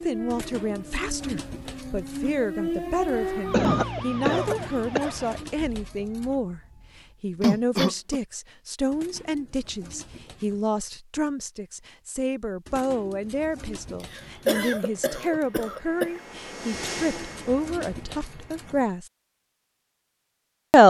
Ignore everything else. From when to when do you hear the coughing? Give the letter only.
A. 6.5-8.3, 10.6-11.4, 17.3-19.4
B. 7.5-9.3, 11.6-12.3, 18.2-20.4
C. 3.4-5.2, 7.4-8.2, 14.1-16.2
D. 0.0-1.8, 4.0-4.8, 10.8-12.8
C.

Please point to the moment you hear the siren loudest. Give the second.
3 s.